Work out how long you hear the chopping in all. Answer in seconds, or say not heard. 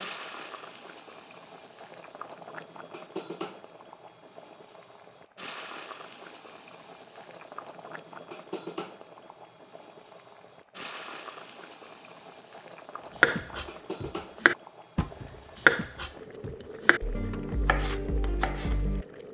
6 s.